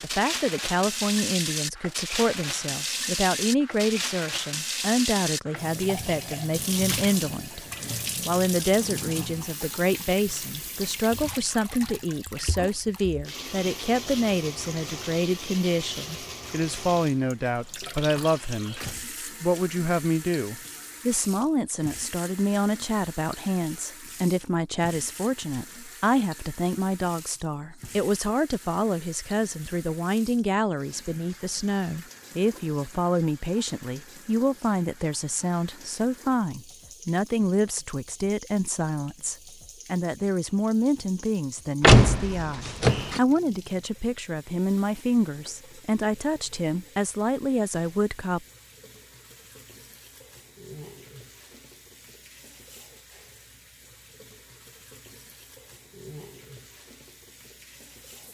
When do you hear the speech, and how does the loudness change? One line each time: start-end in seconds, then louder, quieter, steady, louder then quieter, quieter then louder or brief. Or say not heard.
0.0-48.5 steady.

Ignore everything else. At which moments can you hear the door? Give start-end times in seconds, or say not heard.
41.8-43.2.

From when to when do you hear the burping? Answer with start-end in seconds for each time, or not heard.
not heard.